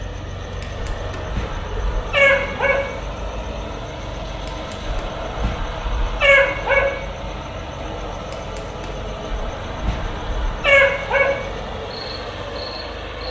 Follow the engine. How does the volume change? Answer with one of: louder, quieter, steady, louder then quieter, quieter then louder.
steady.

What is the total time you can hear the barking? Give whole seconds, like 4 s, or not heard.
6 s.